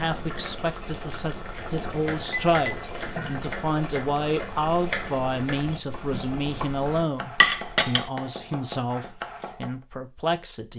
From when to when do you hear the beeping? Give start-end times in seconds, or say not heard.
not heard.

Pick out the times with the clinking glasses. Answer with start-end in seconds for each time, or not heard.
1.7-2.8, 7.4-8.1.